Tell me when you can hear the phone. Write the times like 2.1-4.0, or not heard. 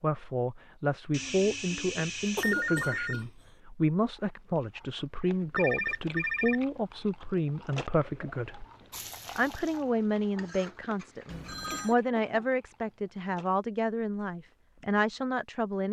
1.1-3.2, 5.5-6.6, 11.3-11.9.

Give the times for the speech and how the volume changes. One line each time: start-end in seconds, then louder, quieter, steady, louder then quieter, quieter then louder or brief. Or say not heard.
0.0-8.7 steady
9.3-15.8 steady.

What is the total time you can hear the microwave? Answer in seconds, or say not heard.
not heard.